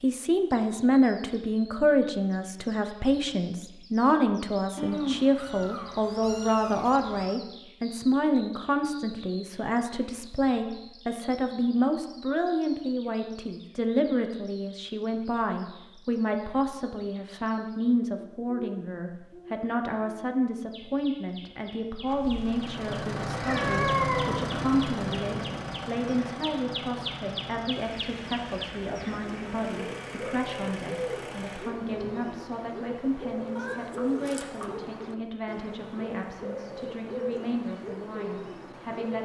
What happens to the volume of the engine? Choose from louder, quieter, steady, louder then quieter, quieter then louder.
quieter.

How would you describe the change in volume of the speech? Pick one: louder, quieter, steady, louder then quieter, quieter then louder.
quieter.